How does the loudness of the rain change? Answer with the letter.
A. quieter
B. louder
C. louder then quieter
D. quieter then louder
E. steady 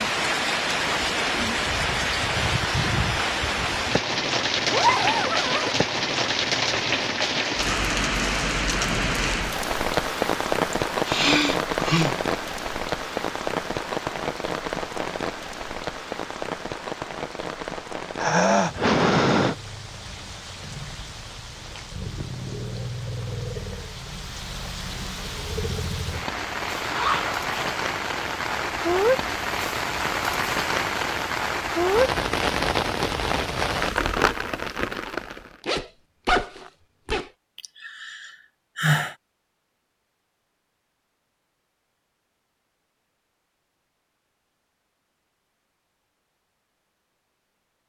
D.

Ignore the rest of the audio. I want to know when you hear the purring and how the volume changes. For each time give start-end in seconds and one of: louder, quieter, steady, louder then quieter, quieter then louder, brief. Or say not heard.
not heard.